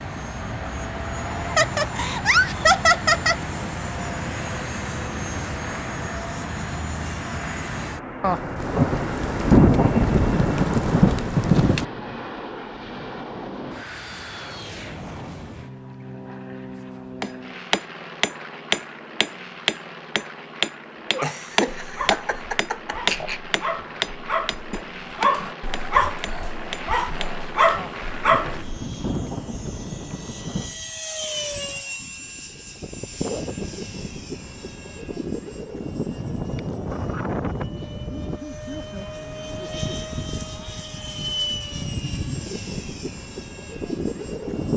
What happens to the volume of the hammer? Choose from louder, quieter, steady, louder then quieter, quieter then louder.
quieter.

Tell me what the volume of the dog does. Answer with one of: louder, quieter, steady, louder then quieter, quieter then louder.
louder.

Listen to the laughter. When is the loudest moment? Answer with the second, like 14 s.
3 s.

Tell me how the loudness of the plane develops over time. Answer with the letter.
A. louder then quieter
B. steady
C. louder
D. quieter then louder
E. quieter
D.